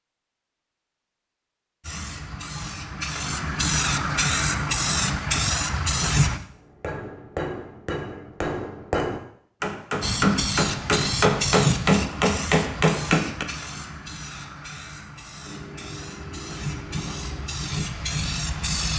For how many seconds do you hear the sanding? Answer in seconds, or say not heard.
not heard.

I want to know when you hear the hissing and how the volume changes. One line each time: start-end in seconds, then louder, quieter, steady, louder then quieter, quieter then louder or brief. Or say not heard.
1.8-6.4 louder
10.0-18.9 quieter then louder.